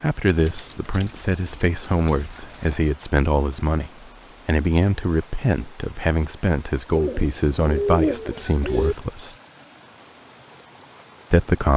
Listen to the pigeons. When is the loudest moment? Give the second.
8 s.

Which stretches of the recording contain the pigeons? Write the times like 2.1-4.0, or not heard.
0.4-2.8, 6.9-8.9.